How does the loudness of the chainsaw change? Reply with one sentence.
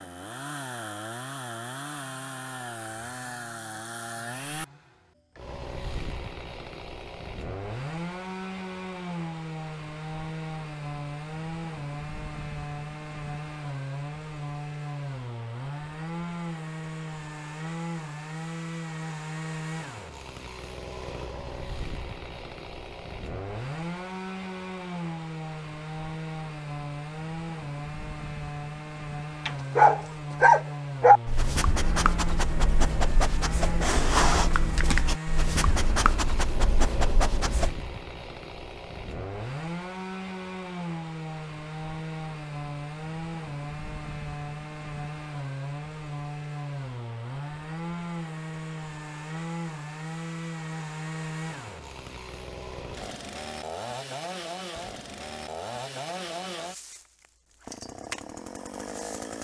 The volume of the chainsaw stays about the same.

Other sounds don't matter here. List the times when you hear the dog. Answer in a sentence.
You can hear the dog from 29.4 to 37.8 s.